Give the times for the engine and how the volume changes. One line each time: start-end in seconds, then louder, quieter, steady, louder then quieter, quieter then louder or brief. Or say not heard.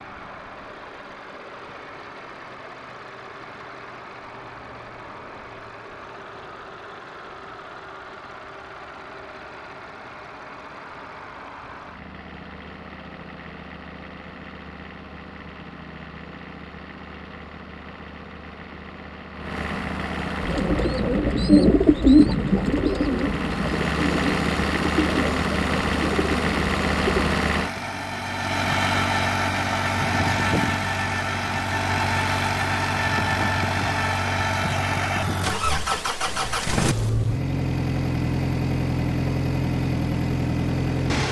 0.0-41.2 louder.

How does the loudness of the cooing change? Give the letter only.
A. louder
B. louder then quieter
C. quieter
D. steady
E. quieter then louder
C.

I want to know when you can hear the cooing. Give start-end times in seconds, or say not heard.
20.4-27.3.